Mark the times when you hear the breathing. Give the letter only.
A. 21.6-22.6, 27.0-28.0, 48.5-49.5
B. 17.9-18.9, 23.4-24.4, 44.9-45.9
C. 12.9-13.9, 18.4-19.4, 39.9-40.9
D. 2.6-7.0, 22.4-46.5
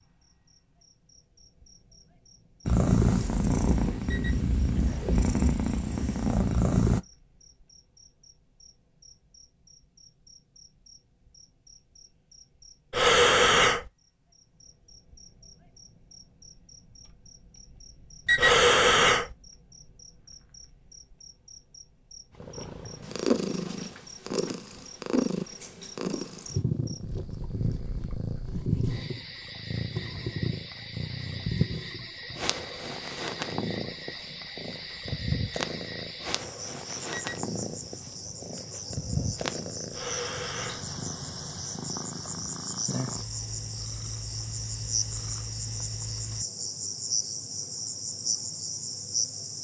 C.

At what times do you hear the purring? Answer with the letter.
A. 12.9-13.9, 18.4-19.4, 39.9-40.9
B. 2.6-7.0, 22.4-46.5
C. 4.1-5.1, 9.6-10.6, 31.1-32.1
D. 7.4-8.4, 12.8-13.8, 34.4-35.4
B.